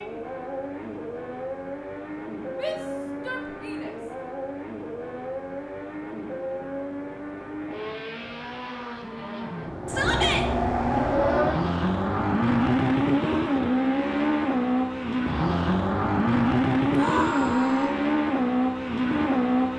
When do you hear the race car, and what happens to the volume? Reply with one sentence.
You can hear the race car from 0.0 to 19.7 s, getting louder.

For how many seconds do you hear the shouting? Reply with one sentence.
The shouting can be heard for 3 seconds in total.